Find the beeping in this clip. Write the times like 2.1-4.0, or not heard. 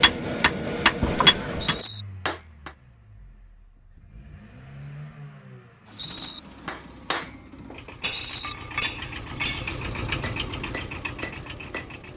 not heard.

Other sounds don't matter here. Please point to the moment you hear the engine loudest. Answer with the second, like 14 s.
10 s.